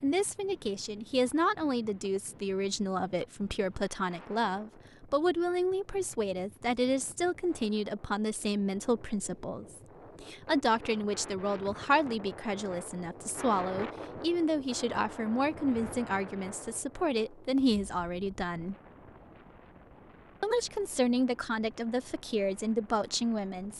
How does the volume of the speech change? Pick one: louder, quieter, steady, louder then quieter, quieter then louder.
steady.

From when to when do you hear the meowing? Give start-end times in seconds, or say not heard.
not heard.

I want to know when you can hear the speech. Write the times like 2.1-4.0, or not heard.
0.0-18.8, 20.4-23.7.